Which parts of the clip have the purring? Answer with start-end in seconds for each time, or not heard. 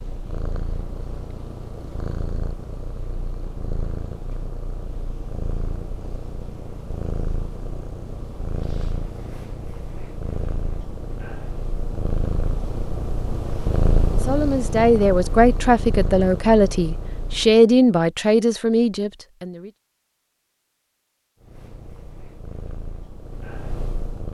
0.0-17.6, 21.4-24.2.